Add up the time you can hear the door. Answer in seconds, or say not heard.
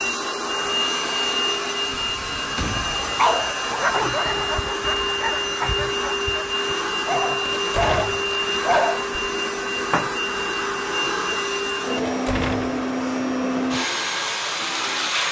3 s.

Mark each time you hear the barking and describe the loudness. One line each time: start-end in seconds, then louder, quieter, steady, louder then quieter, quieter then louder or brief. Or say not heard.
2.8-9.2 quieter then louder.